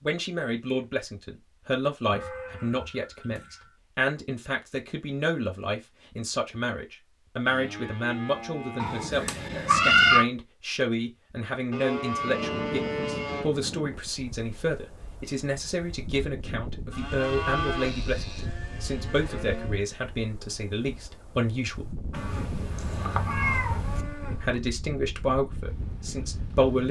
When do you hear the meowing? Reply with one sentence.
You can hear the meowing from 8.8 to 10.2 s and from 22.1 to 24.1 s.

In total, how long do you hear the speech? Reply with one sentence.
The speech can be heard for 24 seconds in total.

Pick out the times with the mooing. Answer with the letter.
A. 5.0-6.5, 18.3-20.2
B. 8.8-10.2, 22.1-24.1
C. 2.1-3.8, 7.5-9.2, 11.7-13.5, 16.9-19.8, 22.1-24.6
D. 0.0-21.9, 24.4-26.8
C.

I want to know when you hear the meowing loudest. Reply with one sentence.
The volume of the meowing peaks at 10 seconds.